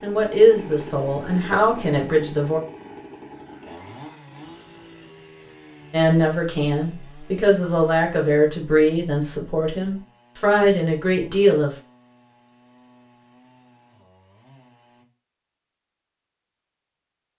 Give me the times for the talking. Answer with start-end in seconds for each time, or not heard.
0.0-2.6, 5.9-11.7.